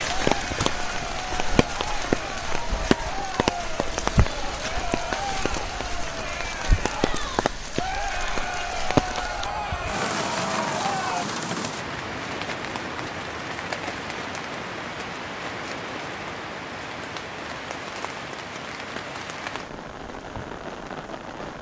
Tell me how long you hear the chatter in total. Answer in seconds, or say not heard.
11 s.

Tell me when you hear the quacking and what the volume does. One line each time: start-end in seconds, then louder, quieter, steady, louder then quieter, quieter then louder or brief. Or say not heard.
not heard.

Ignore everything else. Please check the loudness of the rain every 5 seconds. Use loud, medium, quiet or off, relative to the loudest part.
loud, loud, loud, medium, medium.